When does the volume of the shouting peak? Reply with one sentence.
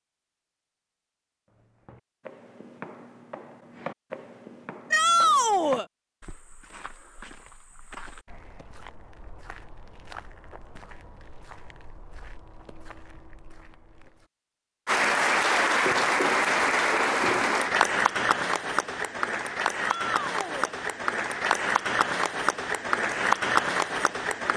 The volume of the shouting peaks at 5 seconds.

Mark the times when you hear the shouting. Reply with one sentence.
The shouting can be heard from 4.9 to 5.8 s and from 19.8 to 20.8 s.